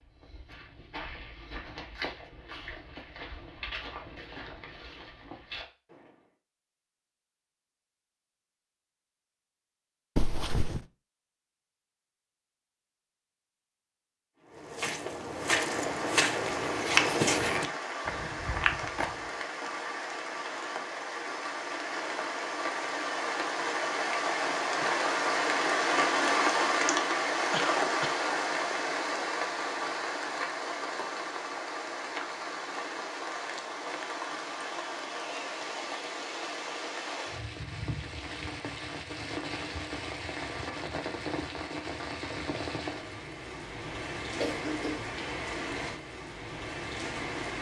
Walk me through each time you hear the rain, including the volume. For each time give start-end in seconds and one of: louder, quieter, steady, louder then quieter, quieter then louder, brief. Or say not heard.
15.4-47.5 louder then quieter.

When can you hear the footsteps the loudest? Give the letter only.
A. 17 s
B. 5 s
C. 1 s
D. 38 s
A.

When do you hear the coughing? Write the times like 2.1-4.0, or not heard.
10.2-10.8, 27.4-28.2, 44.4-45.1.